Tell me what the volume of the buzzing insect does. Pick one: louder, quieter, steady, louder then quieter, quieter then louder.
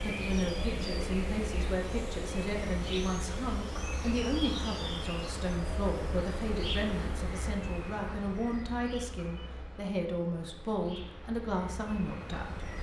quieter.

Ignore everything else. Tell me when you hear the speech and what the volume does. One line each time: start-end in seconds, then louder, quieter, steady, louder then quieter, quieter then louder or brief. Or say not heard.
0.0-12.7 steady.